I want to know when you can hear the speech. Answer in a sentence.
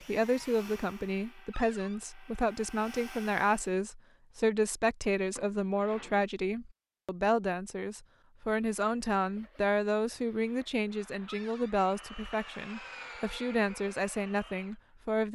The speech can be heard from 0.1 to 15.3 s.